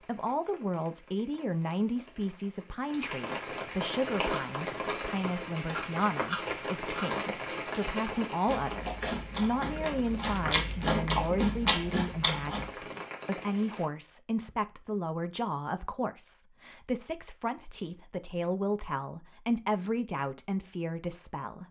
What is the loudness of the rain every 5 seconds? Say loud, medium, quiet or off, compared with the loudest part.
loud, loud, medium, off, off.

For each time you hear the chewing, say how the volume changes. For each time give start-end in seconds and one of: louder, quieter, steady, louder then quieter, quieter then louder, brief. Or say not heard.
4.1-12.7 louder.